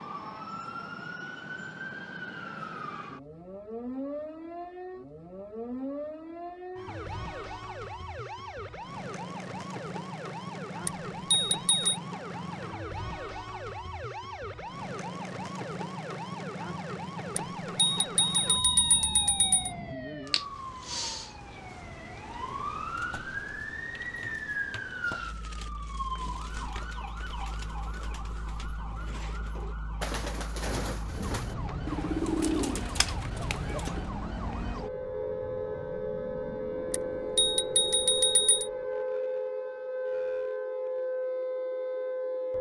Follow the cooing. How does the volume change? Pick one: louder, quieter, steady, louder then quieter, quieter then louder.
louder.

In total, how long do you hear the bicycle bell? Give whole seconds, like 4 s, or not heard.
5 s.